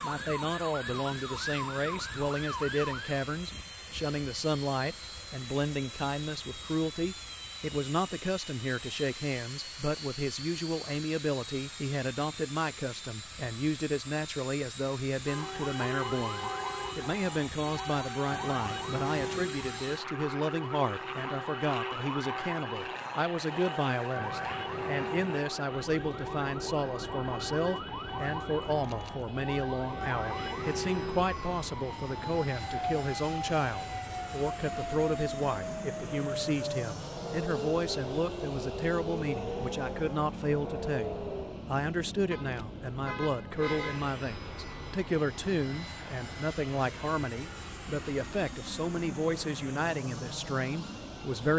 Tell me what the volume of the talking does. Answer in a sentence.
The volume of the talking stays about the same.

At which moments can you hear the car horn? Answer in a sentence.
You can hear the car horn from 15.2 to 16.9 s and from 42.3 to 44.1 s.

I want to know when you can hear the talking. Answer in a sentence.
The talking can be heard from 0.0 to 51.5 s.